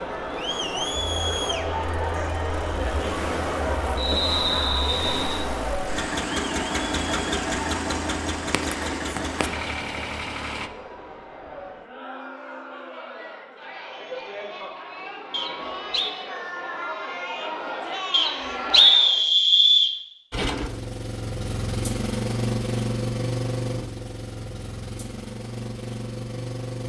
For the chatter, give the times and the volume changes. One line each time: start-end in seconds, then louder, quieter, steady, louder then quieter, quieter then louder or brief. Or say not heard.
0.0-19.2 quieter then louder.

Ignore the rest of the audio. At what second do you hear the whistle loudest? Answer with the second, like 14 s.
19 s.